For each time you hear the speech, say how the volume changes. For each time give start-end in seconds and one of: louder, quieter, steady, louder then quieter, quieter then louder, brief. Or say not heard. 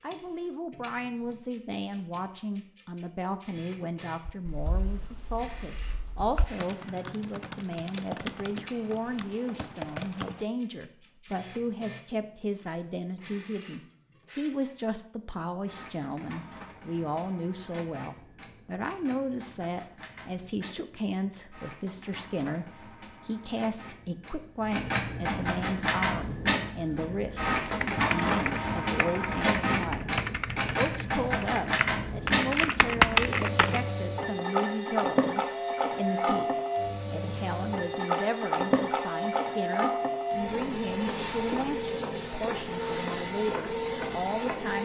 0.0-44.8 steady.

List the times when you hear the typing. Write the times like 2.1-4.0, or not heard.
4.2-10.4, 27.6-33.8.